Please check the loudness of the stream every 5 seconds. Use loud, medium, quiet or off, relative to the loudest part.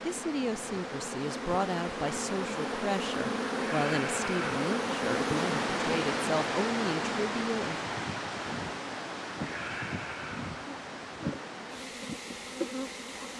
loud, loud, medium.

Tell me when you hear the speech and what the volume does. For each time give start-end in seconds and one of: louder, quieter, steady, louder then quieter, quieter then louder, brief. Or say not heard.
0.0-7.8 steady.